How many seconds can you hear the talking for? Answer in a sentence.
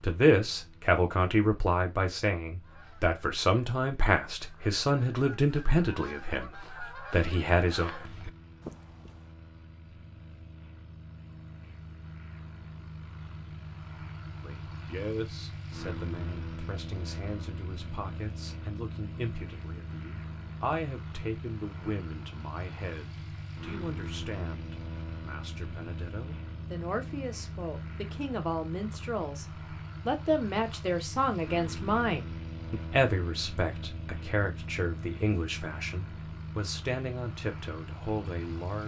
You can hear the talking for 32 seconds altogether.